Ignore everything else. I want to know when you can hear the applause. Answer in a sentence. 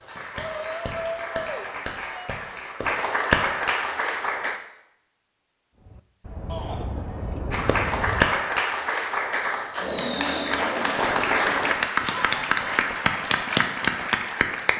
You can hear the applause from 0.0 to 4.6 s and from 7.5 to 14.7 s.